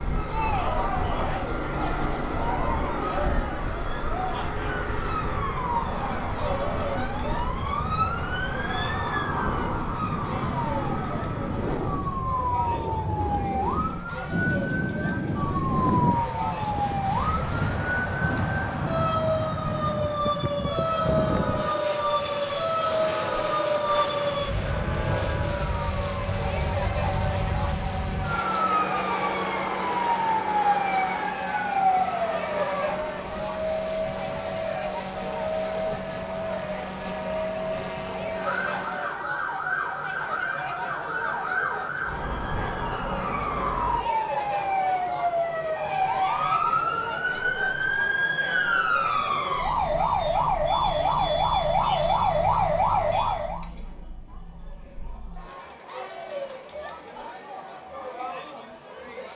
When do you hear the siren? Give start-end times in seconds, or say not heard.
0.0-53.6.